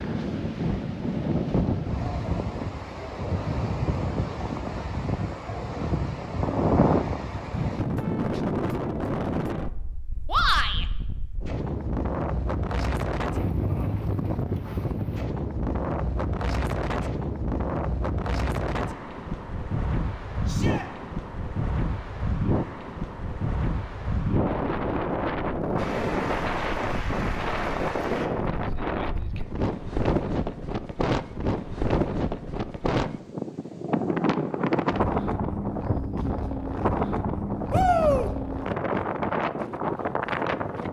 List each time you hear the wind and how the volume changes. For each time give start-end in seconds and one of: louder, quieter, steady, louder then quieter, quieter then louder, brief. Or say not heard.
0.0-40.8 steady.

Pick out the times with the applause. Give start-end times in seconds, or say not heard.
25.8-28.3.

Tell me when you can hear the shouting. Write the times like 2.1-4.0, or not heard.
10.2-10.8, 20.4-20.9, 37.7-38.3.